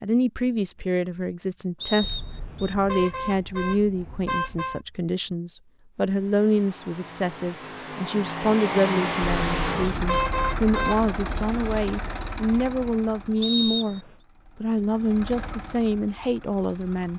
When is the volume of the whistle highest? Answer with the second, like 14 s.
14 s.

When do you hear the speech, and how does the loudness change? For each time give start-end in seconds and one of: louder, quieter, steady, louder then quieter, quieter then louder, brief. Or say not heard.
0.0-17.1 steady.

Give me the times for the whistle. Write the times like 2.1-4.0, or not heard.
1.8-2.8, 13.4-14.1.